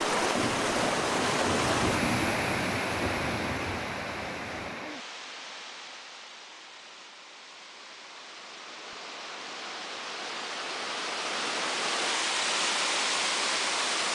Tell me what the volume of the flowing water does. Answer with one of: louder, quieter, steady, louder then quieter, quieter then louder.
quieter then louder.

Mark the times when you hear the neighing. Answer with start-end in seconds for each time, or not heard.
not heard.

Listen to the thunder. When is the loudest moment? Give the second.
2 s.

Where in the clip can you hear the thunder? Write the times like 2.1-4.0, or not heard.
0.3-4.8.